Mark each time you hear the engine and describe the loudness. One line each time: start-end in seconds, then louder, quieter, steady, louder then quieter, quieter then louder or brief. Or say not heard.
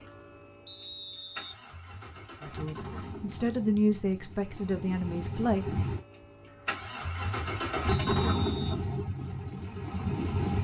0.0-10.6 louder.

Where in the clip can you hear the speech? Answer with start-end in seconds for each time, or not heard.
2.4-5.7.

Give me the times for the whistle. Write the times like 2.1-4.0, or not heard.
0.7-1.6, 7.8-8.8.